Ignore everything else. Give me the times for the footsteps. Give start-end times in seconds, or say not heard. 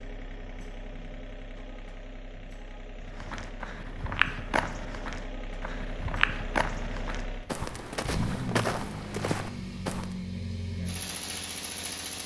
3.0-10.1.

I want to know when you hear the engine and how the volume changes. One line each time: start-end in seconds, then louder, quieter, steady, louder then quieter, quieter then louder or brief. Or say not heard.
0.0-12.2 louder.